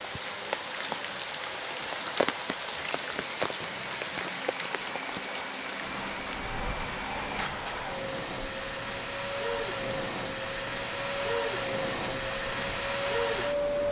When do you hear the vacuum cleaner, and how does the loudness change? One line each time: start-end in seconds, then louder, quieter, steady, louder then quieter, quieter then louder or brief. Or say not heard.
0.0-13.8 louder.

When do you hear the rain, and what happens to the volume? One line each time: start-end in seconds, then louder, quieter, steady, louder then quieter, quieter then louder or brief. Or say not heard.
0.0-13.8 quieter.